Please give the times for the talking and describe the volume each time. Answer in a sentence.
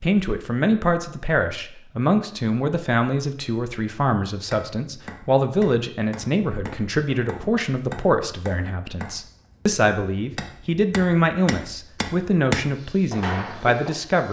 The talking can be heard from 0.0 to 14.2 s, at a steady volume.